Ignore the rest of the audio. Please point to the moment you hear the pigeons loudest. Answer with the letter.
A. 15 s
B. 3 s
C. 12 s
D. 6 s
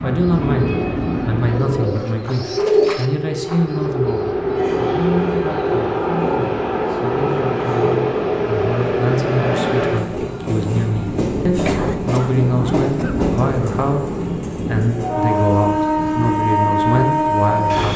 B.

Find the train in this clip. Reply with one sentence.
You can hear the train from 0.0 to 17.9 s.